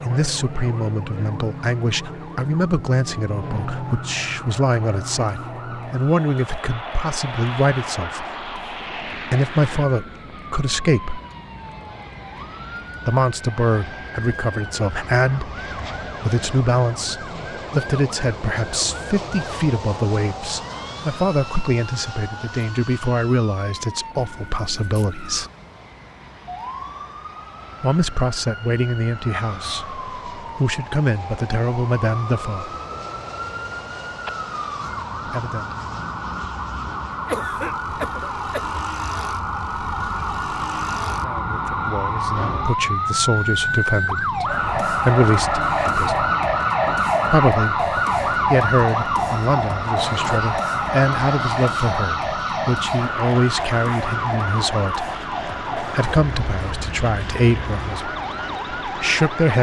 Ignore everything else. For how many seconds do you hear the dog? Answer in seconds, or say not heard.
not heard.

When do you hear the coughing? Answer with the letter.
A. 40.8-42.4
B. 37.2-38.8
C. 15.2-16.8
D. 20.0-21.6
B.